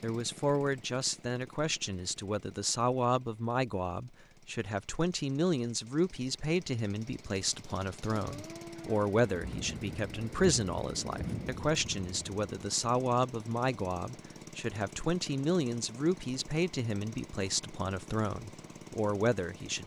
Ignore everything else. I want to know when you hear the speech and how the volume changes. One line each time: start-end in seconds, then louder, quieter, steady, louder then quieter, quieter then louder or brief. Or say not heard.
0.0-19.8 steady.